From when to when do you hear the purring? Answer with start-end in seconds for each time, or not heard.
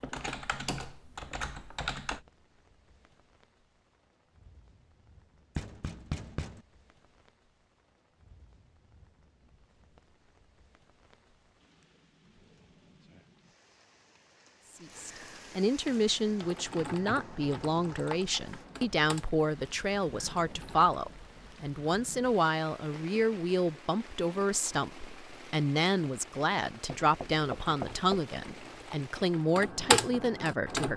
not heard.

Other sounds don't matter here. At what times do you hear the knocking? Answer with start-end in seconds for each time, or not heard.
5.5-6.6, 26.9-28.2.